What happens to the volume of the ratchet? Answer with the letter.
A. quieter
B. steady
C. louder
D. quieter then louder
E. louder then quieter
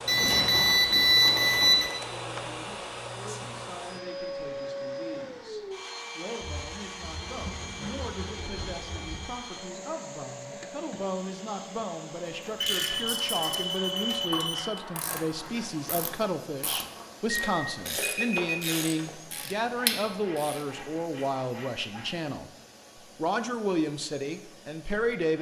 C.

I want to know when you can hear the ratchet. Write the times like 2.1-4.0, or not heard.
12.5-20.6.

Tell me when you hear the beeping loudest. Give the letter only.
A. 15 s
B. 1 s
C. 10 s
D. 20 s
B.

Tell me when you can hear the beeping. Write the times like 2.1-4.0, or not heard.
0.1-1.9, 12.6-14.6, 17.5-18.6.